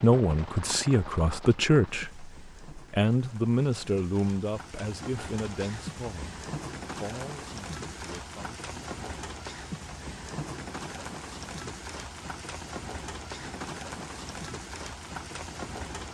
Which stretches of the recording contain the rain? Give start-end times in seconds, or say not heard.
0.0-16.0.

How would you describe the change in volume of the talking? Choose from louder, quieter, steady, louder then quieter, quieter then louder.
quieter.